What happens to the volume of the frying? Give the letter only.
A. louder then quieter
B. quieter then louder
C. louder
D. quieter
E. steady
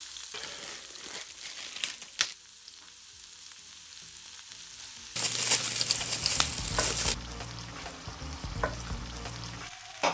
C.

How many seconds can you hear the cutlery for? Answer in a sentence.
You can't hear the cutlery here.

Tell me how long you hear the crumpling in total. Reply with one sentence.
You can hear the crumpling for 4 seconds altogether.